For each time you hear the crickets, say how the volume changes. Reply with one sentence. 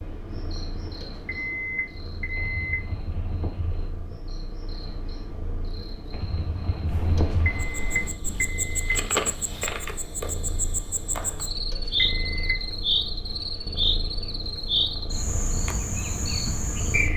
You can hear the crickets from 0.0 to 17.1 s, getting louder.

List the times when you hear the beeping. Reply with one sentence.
You can hear the beeping from 1.0 to 2.8 s, from 7.2 to 8.9 s and from 11.7 to 12.6 s.